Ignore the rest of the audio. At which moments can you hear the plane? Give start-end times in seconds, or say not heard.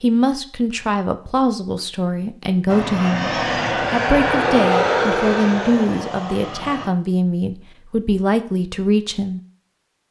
2.6-6.9.